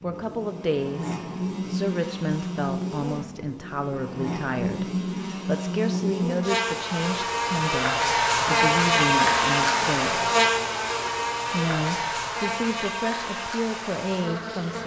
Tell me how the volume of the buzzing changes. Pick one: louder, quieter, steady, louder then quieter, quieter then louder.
louder then quieter.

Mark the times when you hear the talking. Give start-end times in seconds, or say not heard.
0.0-10.3, 11.4-14.8.